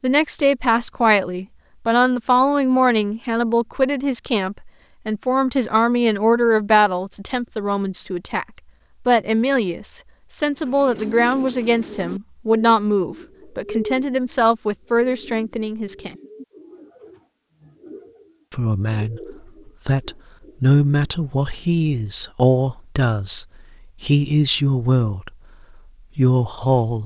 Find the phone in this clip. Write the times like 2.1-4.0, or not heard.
not heard.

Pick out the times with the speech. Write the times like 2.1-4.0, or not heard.
0.0-8.4, 9.1-16.1, 18.5-25.3, 26.1-27.0.